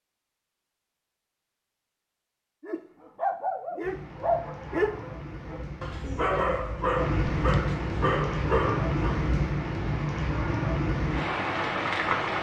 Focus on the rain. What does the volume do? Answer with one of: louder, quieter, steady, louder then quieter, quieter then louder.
louder.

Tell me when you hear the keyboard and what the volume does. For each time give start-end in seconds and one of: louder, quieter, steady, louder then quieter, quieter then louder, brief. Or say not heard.
not heard.